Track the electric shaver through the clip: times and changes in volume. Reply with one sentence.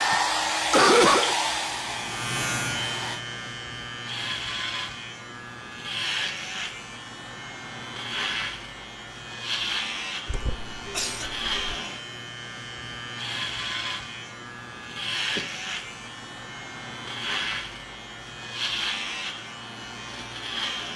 You can hear the electric shaver from 0.0 to 20.9 s, at a steady volume.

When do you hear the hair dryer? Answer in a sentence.
You can hear the hair dryer from 0.0 to 3.2 s.